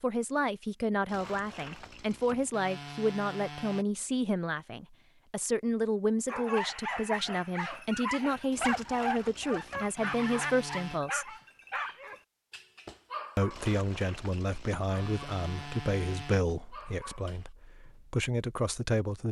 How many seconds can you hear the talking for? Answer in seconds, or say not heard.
17 s.